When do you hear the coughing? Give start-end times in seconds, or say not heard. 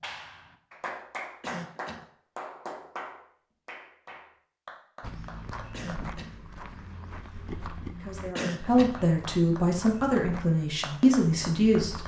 1.4-2.0, 5.7-6.3, 8.3-8.9.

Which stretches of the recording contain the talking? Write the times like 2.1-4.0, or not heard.
8.0-12.0.